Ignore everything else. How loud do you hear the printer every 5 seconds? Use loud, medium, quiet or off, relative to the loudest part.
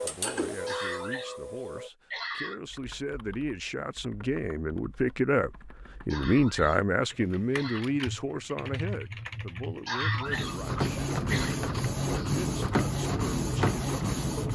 medium, off, loud.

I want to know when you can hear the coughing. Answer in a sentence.
You can hear the coughing from 0.7 to 2.8 s, from 6.1 to 7.8 s and from 9.8 to 11.6 s.